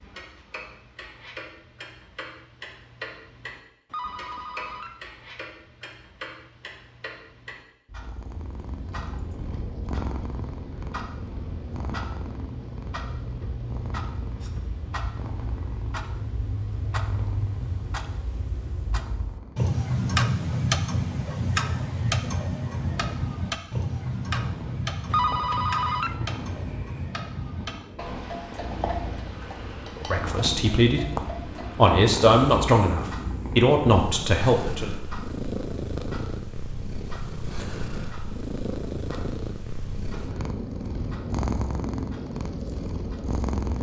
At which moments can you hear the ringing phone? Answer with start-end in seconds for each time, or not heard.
3.9-5.0, 25.1-26.1.